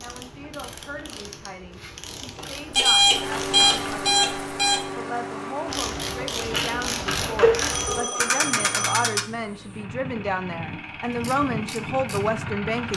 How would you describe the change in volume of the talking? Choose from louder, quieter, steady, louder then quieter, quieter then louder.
louder.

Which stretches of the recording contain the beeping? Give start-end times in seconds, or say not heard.
2.7-4.8, 7.4-9.2.